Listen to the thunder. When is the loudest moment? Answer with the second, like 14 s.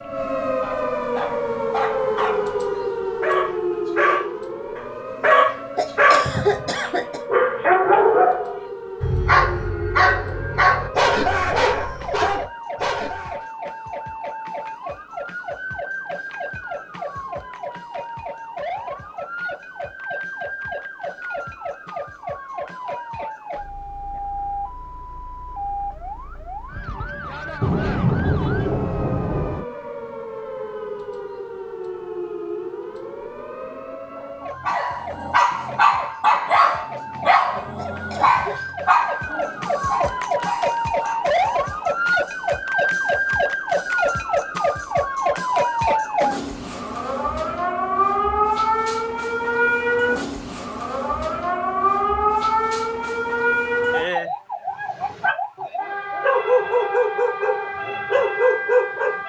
28 s.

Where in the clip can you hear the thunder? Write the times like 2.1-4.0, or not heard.
27.6-29.6.